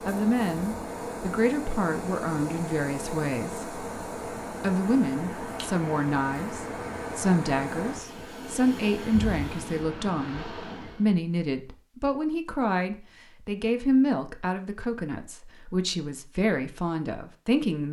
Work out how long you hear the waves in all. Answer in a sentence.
You can hear the waves for 11 seconds altogether.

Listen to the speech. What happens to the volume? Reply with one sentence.
The loudness of the speech stays about the same.